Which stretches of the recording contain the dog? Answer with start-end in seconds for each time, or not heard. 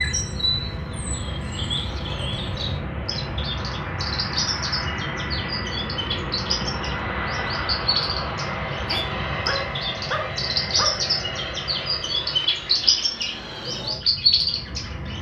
8.7-11.1.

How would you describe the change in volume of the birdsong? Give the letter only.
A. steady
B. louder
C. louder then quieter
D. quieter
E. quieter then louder
B.